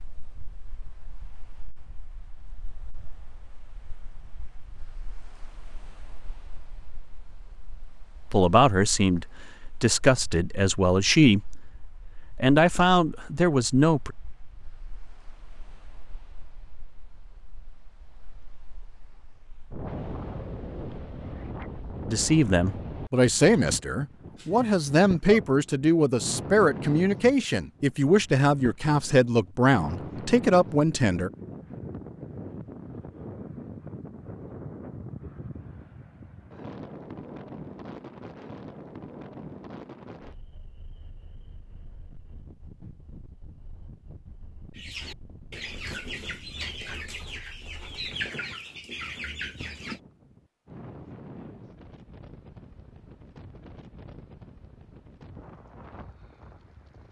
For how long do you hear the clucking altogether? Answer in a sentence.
The clucking can be heard for 5 seconds in total.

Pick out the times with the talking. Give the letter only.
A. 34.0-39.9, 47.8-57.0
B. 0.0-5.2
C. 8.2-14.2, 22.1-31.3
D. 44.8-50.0
C.